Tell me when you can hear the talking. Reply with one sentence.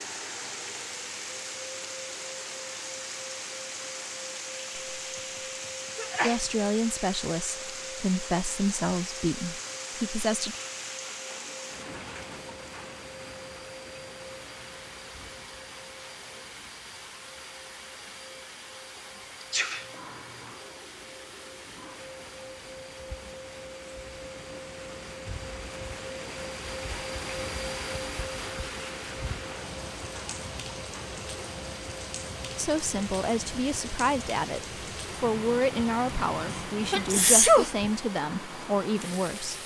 You can hear the talking from 6.2 to 10.6 s and from 32.5 to 39.6 s.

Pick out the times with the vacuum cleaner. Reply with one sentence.
The vacuum cleaner can be heard from 0.0 to 39.6 s.